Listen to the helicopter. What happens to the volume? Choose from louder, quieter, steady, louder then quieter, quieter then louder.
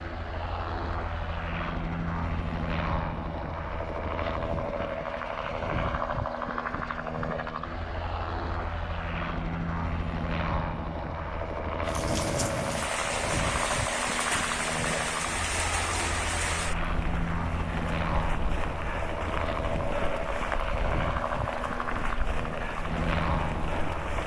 steady.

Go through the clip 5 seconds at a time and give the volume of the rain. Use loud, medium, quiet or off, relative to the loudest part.
off, off, loud, loud, medium.